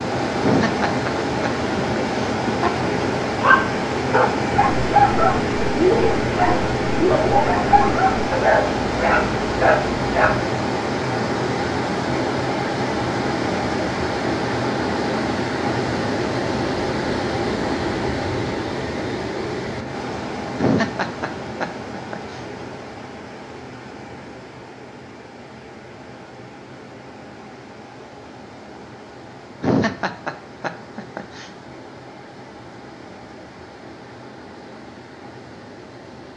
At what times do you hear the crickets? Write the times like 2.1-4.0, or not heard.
not heard.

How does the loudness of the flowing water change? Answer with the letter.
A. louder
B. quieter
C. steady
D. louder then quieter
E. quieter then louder
B.